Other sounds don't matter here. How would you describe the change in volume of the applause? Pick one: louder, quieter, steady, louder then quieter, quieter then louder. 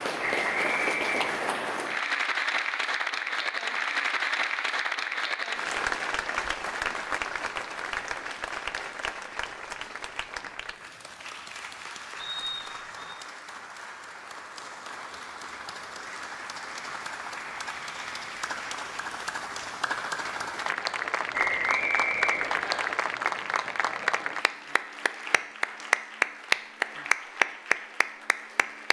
quieter then louder.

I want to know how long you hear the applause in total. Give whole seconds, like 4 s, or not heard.
29 s.